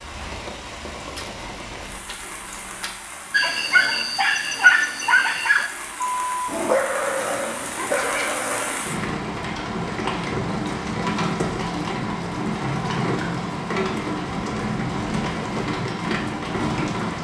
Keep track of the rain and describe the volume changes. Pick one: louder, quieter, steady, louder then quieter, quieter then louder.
louder.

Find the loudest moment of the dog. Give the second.
5 s.